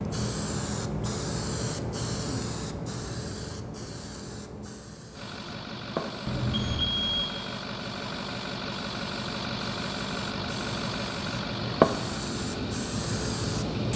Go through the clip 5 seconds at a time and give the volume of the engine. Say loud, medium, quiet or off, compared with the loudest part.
off, loud, loud.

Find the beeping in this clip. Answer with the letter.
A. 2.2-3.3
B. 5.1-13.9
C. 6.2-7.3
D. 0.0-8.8
C.